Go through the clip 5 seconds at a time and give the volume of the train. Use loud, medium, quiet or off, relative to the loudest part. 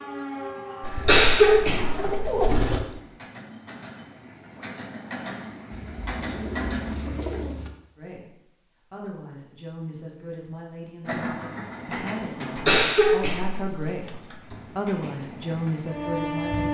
medium, loud, medium, loud.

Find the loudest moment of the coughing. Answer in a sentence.
The loudest moment of the coughing is at 1 second.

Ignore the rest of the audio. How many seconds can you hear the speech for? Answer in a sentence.
You can hear the speech for 9 seconds altogether.